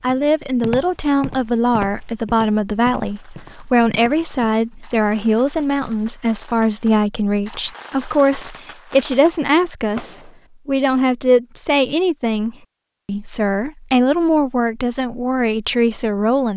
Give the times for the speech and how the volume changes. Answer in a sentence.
You can hear the speech from 0.0 to 16.5 s, at a steady volume.